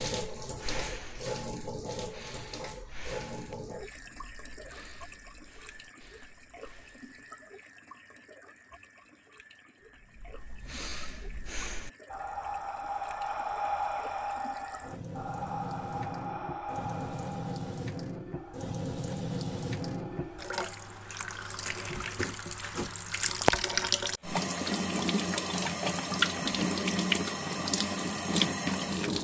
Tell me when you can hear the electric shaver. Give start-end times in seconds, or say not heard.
not heard.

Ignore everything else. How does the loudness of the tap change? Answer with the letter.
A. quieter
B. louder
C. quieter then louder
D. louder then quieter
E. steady
C.